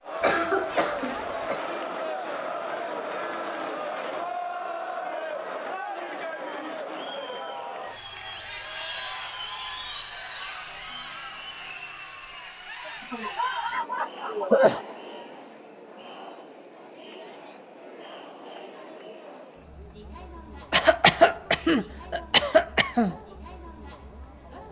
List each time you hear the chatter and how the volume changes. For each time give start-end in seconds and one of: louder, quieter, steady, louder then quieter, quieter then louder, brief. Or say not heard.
0.0-24.6 quieter.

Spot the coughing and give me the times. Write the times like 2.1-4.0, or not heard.
0.2-1.6, 12.8-14.8, 20.7-23.1.